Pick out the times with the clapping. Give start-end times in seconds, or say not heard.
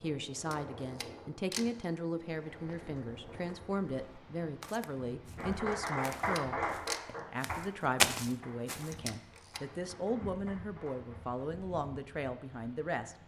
5.3-11.3.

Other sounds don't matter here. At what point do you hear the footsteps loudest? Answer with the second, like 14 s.
8 s.